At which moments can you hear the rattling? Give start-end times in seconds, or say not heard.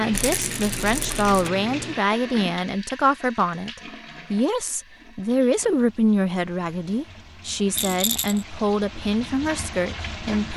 0.1-1.5, 7.7-8.4.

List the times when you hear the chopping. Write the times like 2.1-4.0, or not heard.
not heard.